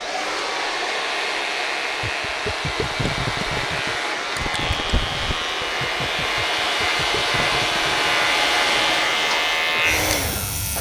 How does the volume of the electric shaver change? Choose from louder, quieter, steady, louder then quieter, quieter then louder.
louder.